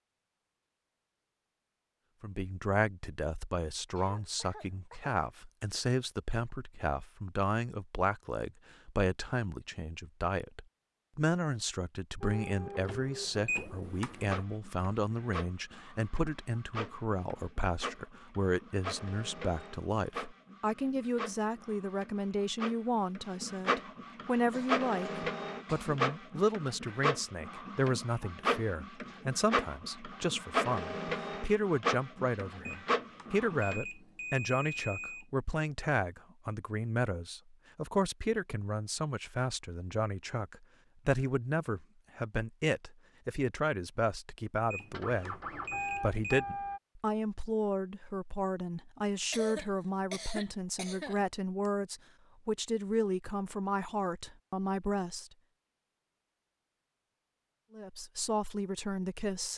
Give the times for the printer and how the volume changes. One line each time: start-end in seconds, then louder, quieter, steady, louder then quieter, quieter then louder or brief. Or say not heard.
12.2-33.8 louder
44.9-46.8 brief.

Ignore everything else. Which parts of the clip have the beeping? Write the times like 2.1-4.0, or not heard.
13.4-14.4, 32.6-35.2, 44.7-46.5.